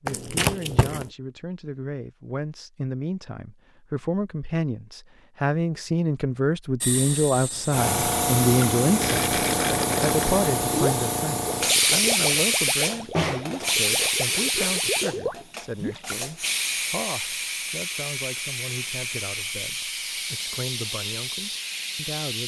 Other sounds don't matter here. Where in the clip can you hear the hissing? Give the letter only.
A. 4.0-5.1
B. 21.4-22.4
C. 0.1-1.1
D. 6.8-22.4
D.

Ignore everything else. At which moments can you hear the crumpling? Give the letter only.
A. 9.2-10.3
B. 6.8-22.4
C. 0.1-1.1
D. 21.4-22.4
C.